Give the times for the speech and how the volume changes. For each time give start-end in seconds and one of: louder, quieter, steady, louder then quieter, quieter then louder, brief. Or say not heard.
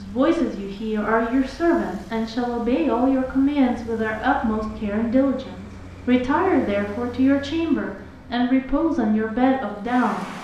0.0-10.2 steady.